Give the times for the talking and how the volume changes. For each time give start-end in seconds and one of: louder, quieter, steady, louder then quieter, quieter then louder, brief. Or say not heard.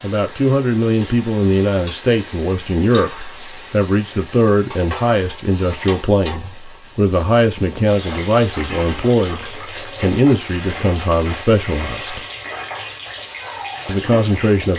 0.0-12.2 steady
13.8-14.7 brief.